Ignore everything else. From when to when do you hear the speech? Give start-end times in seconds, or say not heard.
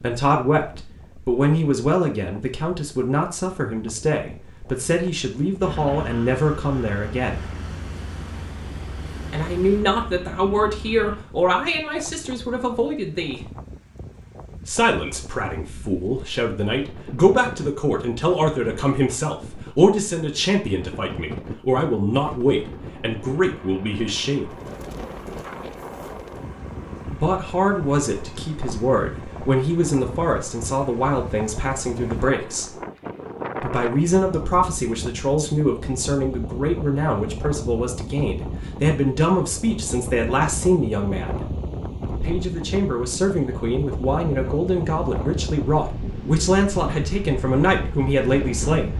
0.0-7.4, 9.3-13.4, 14.7-24.5, 27.1-32.8, 33.6-41.5, 42.2-48.9.